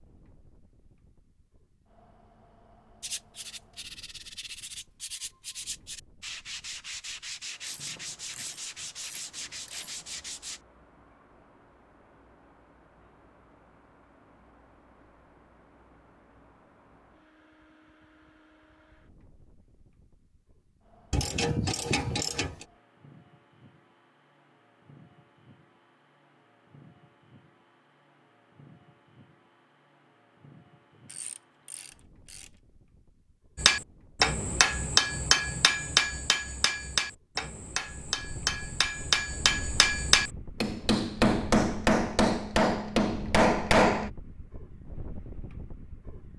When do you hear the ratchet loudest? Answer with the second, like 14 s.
22 s.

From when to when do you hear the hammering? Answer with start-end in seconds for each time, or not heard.
33.5-44.1.